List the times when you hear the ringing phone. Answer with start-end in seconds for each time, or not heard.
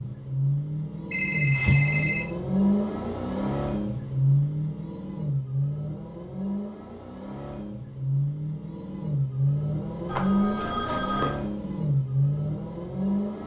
1.1-2.2, 10.1-11.4.